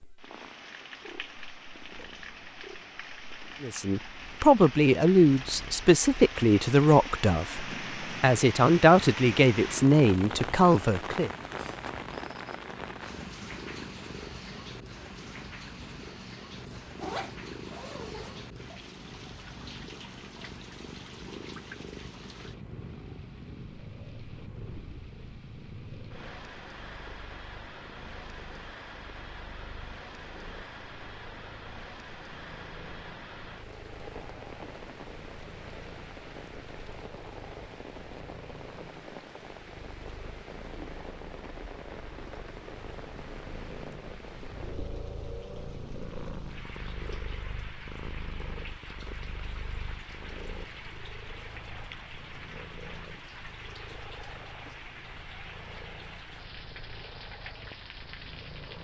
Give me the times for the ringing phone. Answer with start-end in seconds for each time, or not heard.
not heard.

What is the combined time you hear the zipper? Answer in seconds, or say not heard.
2 s.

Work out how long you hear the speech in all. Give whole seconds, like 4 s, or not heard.
8 s.